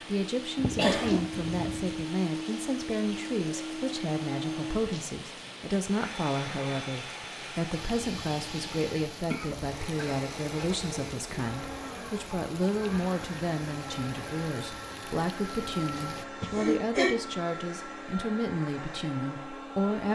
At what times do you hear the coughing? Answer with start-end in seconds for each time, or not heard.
0.8-1.2, 9.3-10.8, 15.9-17.1.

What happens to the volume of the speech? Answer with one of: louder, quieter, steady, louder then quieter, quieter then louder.
steady.